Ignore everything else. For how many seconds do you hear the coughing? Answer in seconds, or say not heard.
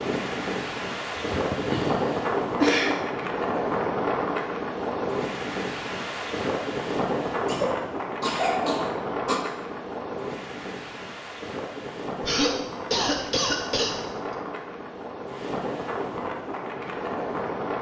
6 s.